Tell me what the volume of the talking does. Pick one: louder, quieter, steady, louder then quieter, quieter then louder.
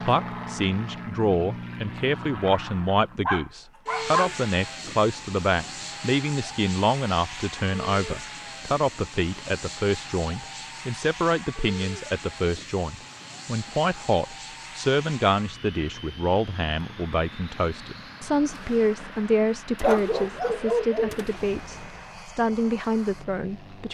steady.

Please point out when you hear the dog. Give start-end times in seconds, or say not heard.
3.2-4.2, 19.8-21.9.